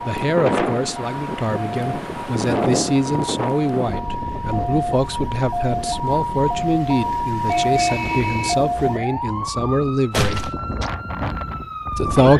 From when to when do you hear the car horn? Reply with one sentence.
You can hear the car horn from 7.5 to 8.6 s.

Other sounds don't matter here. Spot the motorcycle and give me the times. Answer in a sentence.
You can't hear the motorcycle here.